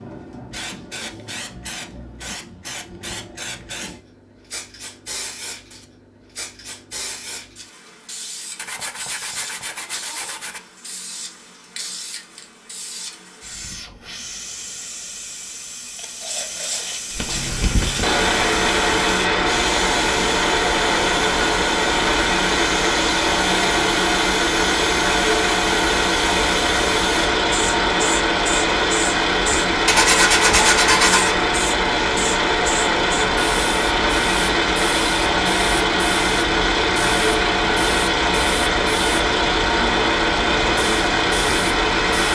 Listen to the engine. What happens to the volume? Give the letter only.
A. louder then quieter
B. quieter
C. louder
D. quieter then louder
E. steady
E.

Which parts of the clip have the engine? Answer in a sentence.
The engine can be heard from 17.1 to 42.2 s.